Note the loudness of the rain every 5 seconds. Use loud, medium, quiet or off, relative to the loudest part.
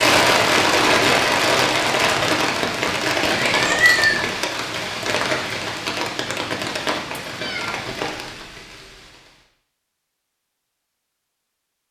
loud, medium, off.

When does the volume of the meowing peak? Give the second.
4 s.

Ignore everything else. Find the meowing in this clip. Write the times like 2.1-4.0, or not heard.
3.4-4.2, 7.3-7.7.